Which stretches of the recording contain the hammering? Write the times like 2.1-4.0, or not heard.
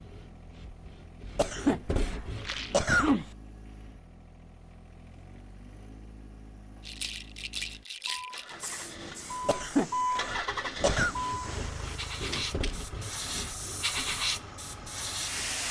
not heard.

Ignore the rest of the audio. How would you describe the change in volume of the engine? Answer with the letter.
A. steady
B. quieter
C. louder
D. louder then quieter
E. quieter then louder
D.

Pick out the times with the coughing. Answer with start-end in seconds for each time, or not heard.
1.4-3.2, 9.4-11.2.